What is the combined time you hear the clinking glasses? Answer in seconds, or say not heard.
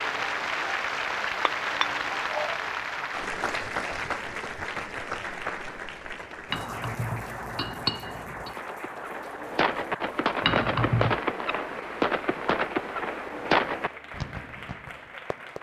4 s.